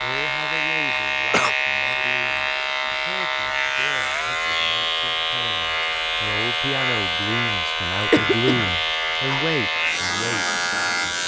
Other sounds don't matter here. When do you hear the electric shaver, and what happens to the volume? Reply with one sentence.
You can hear the electric shaver from 0.0 to 11.2 s, at a steady volume.